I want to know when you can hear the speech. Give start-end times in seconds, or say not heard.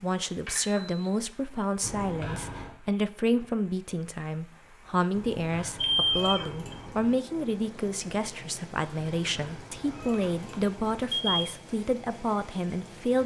0.0-13.2.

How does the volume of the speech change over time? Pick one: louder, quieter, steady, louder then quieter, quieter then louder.
steady.